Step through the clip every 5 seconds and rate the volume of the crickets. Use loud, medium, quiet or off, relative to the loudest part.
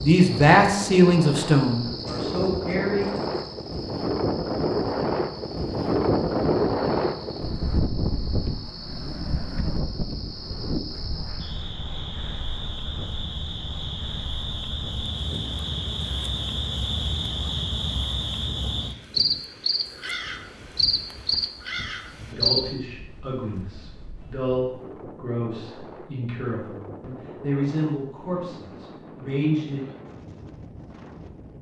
quiet, quiet, medium, loud, loud, off, off.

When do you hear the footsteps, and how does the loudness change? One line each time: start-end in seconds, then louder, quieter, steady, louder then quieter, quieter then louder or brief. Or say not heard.
not heard.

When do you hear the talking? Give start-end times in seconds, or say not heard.
0.0-3.0, 22.2-29.8.